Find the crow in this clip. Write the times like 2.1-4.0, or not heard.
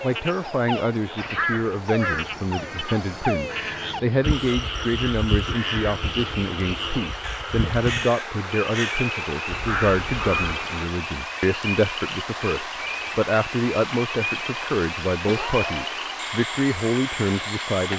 1.1-10.6.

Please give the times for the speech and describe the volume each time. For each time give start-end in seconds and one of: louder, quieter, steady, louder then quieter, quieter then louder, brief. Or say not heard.
0.0-17.9 steady.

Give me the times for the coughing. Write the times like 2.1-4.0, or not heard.
15.2-15.9.